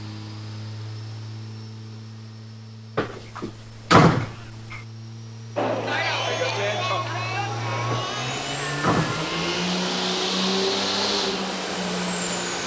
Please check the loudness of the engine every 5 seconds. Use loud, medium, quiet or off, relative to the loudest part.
quiet, medium, loud.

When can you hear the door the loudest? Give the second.
4 s.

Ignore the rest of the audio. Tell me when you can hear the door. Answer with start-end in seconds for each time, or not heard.
3.0-4.8, 7.9-9.2.